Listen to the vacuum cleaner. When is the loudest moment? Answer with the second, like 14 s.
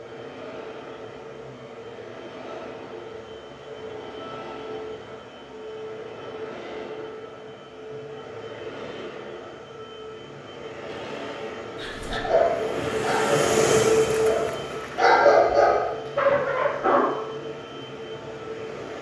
14 s.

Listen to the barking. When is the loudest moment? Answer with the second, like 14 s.
15 s.